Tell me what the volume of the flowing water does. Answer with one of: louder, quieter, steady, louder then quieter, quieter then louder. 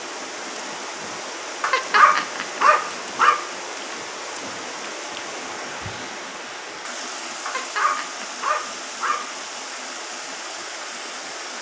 steady.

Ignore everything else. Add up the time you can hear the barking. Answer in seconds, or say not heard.
4 s.